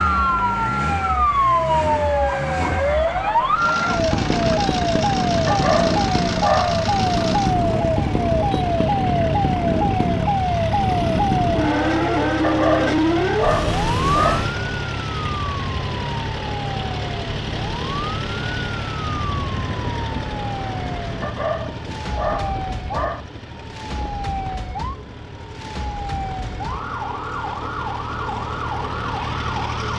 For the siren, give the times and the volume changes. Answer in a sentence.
You can hear the siren from 0.0 to 29.9 s, getting quieter.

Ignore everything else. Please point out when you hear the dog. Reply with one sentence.
The dog can be heard from 5.5 to 6.9 s, from 12.4 to 14.4 s and from 21.2 to 23.2 s.